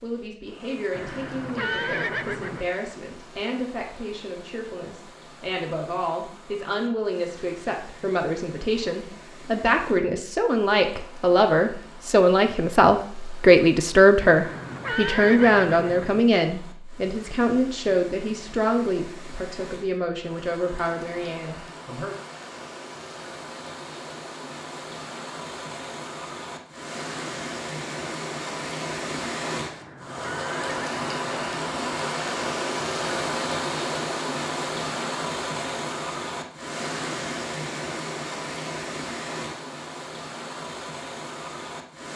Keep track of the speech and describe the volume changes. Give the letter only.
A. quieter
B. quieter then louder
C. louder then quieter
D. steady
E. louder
C.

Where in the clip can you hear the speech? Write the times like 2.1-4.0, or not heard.
0.0-22.1.